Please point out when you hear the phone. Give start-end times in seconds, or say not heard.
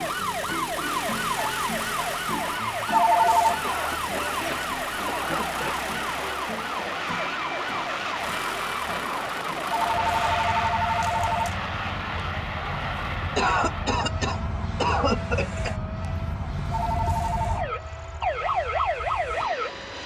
2.9-3.6, 9.8-11.6, 16.7-17.6.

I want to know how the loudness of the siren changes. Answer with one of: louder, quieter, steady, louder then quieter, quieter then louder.
quieter then louder.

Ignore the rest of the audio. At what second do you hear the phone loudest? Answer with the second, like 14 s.
3 s.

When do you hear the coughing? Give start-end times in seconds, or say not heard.
3.6-5.9, 13.3-15.8.